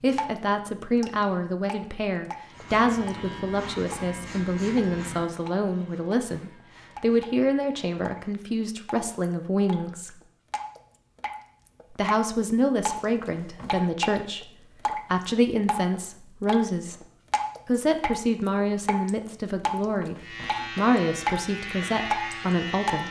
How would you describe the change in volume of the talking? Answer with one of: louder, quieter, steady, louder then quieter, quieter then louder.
steady.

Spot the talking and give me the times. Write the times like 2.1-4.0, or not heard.
0.0-10.2, 11.9-17.1, 17.6-23.0.